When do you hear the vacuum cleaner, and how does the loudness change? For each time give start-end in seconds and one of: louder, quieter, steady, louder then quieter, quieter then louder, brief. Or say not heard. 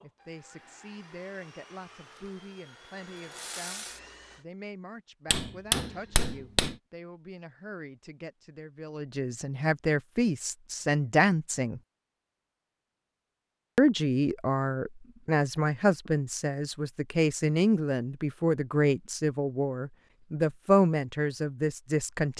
0.0-4.5 louder.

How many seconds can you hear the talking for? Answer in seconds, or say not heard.
20 s.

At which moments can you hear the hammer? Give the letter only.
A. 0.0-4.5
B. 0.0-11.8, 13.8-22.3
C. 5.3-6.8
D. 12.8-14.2
C.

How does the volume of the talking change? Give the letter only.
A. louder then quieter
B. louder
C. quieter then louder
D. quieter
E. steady
B.